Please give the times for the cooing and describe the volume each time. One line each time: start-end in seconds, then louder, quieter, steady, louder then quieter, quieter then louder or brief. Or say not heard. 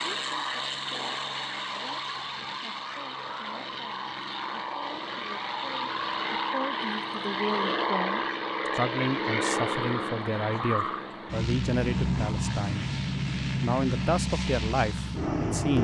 not heard.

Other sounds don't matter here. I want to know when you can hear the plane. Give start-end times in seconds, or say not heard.
0.0-15.7.